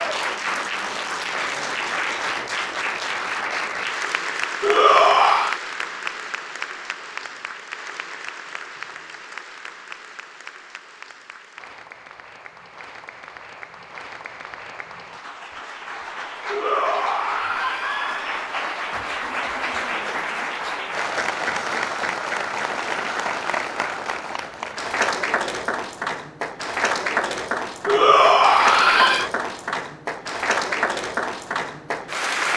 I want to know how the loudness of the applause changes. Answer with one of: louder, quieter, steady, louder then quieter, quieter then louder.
quieter then louder.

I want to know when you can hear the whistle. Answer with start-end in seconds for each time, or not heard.
not heard.